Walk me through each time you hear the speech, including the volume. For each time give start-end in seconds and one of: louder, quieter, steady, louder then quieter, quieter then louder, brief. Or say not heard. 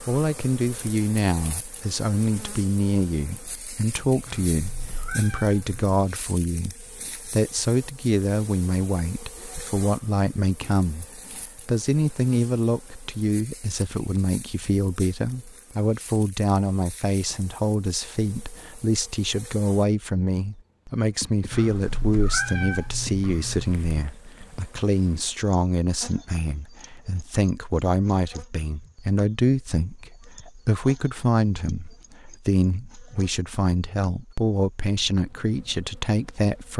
0.1-36.7 steady.